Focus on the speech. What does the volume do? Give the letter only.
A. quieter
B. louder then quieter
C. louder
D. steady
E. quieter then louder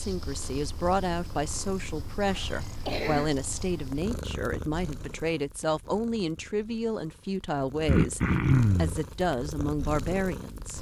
D.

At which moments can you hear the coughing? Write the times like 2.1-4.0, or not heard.
2.2-3.3, 7.8-9.0.